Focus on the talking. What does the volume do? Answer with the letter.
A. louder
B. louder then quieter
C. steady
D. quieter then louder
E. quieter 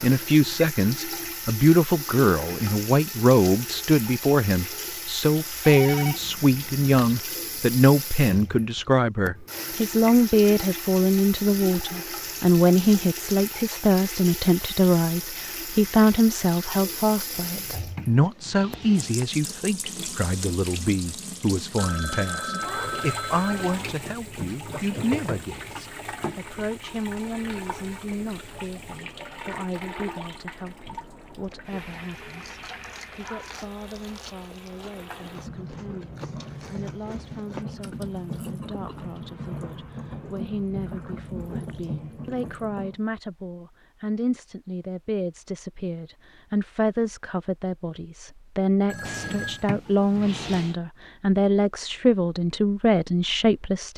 D.